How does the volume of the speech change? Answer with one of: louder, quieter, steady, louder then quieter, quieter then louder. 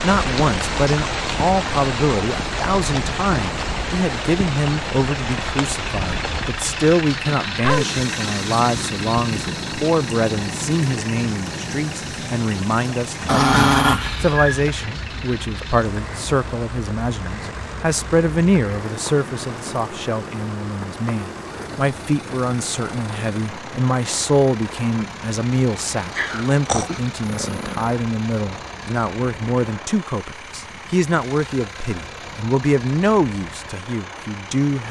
steady.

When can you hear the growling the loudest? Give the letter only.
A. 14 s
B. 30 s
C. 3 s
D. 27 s
A.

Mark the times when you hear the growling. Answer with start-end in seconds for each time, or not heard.
13.2-14.6, 26.1-27.9.